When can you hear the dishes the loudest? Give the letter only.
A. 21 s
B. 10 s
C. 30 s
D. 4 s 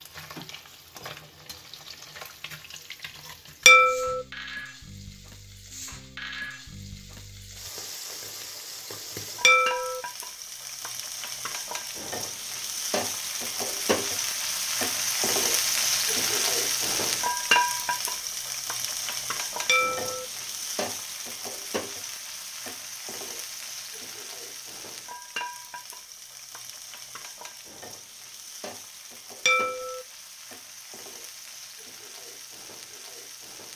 D.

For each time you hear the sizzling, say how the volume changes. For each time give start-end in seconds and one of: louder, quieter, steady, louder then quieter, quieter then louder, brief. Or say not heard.
0.0-33.7 louder then quieter.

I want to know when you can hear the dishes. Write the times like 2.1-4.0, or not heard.
3.6-4.2, 9.4-10.0, 19.6-20.2, 29.4-30.0.